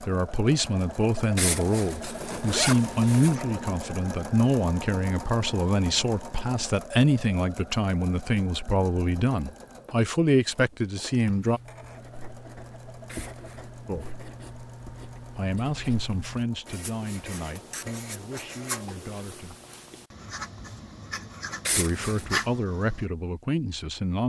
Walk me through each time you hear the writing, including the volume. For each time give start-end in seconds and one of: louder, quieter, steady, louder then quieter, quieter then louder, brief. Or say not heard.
11.2-23.1 louder.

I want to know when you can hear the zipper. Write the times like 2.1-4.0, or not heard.
1.4-3.4, 13.1-13.7, 21.6-22.4.